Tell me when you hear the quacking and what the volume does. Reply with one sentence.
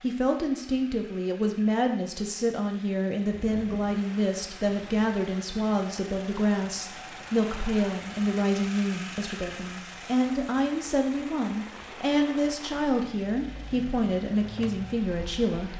The quacking can't be heard in this clip.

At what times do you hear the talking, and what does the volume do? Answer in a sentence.
The talking can be heard from 0.0 to 15.7 s, at a steady volume.